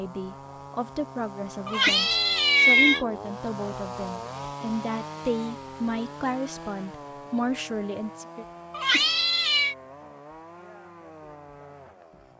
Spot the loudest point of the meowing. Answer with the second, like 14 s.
3 s.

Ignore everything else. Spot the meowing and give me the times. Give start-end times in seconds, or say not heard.
1.6-3.0, 8.7-9.8.